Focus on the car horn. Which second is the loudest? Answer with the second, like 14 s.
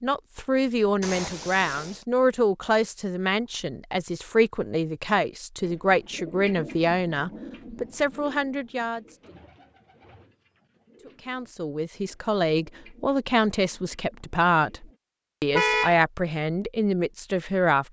16 s.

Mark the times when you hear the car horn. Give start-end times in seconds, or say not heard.
1.0-2.0, 15.5-16.0.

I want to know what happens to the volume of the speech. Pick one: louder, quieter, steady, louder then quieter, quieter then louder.
steady.